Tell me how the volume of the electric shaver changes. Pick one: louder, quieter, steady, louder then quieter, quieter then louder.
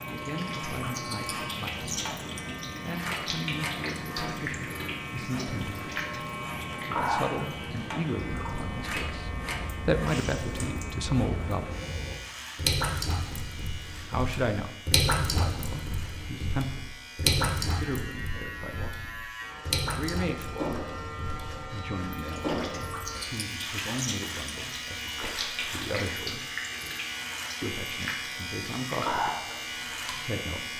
quieter then louder.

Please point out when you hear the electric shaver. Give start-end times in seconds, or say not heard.
0.0-30.7.